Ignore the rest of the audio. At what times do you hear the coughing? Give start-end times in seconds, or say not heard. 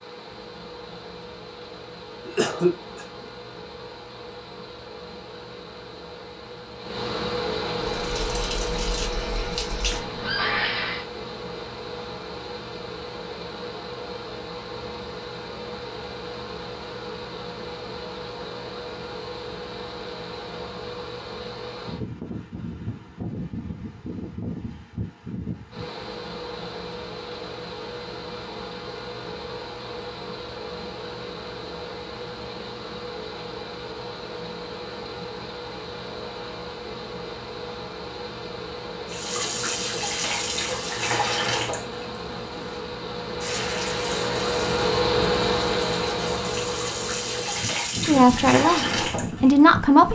2.2-3.0.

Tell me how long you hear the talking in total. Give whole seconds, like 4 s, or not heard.
2 s.